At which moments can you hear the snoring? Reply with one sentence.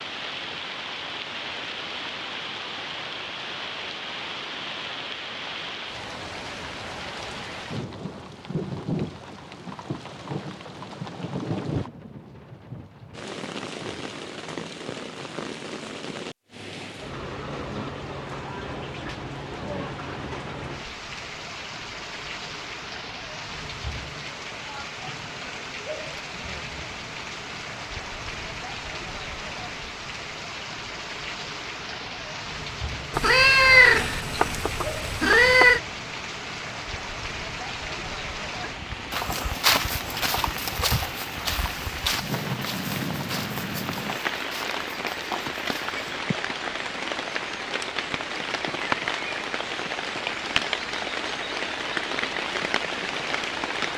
You can't hear the snoring here.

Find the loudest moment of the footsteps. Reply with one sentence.
The volume of the footsteps peaks at 40 seconds.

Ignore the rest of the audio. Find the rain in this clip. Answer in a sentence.
You can hear the rain from 0.0 to 53.9 s.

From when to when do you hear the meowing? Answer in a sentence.
You can hear the meowing from 33.1 to 35.8 s.